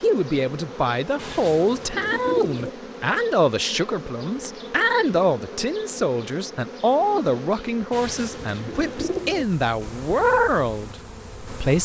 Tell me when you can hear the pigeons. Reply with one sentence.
You can hear the pigeons from 1.1 to 2.7 s and from 7.9 to 9.4 s.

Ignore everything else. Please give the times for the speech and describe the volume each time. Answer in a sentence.
The speech can be heard from 0.0 to 11.7 s, at a steady volume.